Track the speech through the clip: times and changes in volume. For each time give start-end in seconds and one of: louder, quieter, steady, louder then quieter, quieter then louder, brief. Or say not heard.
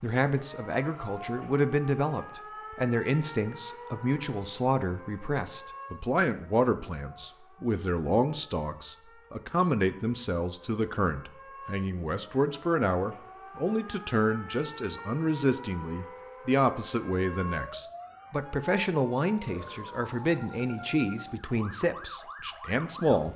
0.0-23.3 steady.